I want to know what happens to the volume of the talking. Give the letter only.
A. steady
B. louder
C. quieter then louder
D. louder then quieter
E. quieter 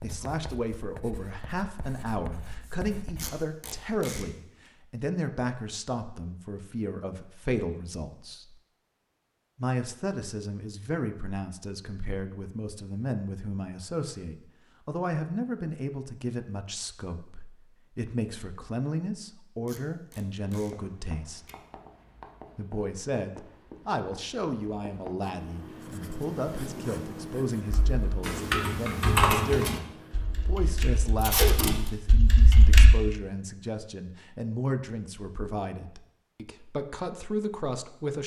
A.